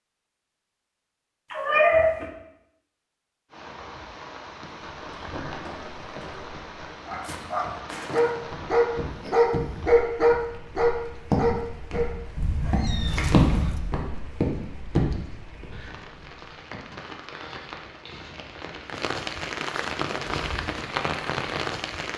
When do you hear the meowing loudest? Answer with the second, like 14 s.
2 s.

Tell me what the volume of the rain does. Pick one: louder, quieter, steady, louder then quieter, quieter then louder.
quieter then louder.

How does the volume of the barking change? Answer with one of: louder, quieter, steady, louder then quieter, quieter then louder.
louder then quieter.